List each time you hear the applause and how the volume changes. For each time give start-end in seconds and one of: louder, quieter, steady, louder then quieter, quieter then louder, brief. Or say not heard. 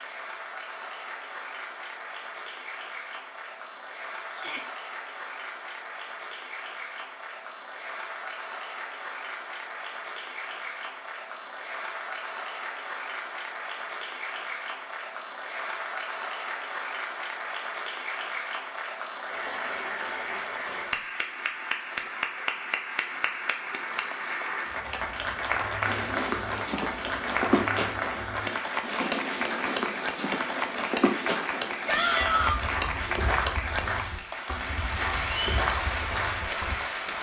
0.0-37.1 louder.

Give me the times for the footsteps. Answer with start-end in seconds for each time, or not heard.
25.8-36.8.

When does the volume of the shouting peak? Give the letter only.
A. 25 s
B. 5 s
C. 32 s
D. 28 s
C.